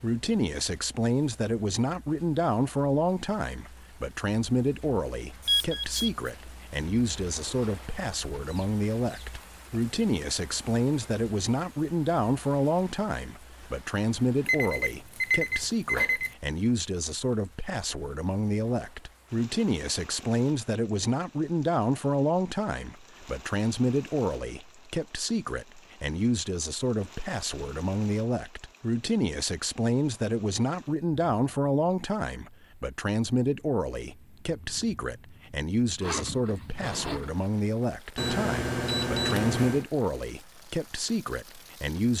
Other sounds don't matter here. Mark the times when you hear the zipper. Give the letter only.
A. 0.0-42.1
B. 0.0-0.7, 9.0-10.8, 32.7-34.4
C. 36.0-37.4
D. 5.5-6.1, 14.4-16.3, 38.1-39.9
C.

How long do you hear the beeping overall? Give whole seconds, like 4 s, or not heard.
4 s.